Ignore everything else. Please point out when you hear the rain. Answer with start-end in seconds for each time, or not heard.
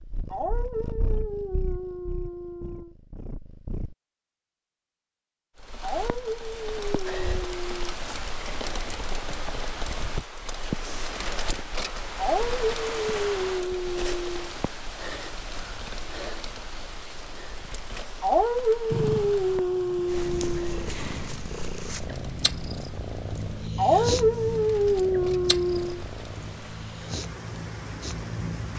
5.5-28.7.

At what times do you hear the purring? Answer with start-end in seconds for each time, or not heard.
0.0-4.0, 18.9-28.7.